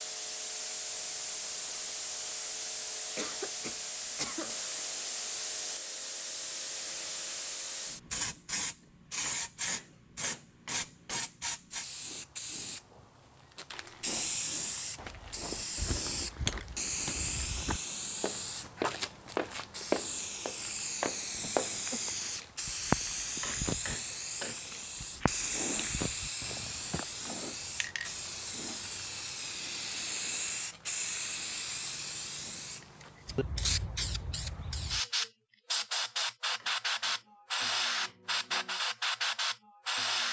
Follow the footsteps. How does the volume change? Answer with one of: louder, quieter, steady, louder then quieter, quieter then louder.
louder then quieter.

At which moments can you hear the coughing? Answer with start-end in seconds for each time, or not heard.
3.1-4.5, 21.3-22.0.